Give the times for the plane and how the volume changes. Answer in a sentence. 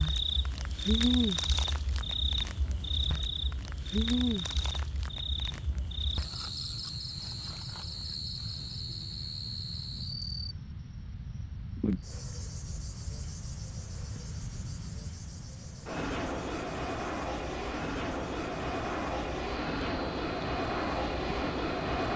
You can hear the plane from 0.1 to 22.1 s, getting louder.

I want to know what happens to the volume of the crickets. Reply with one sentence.
The loudness of the crickets goes down.